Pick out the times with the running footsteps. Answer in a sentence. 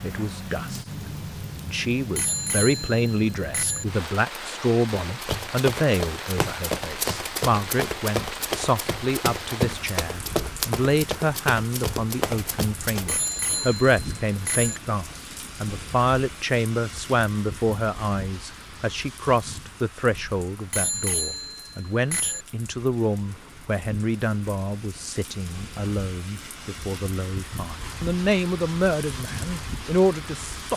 You can hear the running footsteps from 5.0 to 13.4 s.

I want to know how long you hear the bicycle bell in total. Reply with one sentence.
You can hear the bicycle bell for 5 seconds altogether.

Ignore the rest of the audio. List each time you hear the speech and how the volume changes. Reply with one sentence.
You can hear the speech briefly from 0.0 to 0.8 s; and from 1.6 to 30.7 s, at a steady volume.